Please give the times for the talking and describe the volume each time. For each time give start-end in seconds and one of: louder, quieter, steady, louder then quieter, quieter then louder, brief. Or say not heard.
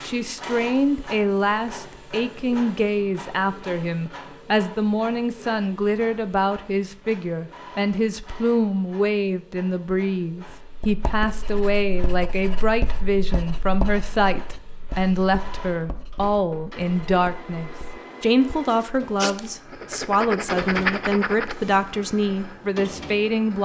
0.0-23.5 steady.